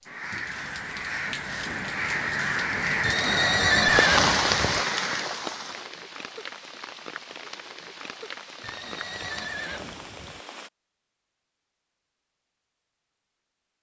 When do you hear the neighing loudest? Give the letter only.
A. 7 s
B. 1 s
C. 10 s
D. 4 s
D.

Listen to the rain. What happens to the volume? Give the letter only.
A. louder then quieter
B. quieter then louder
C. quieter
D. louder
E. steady
A.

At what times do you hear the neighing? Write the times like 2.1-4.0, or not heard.
3.0-4.8, 8.6-10.4.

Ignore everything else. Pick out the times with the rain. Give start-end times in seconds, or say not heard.
0.0-10.7.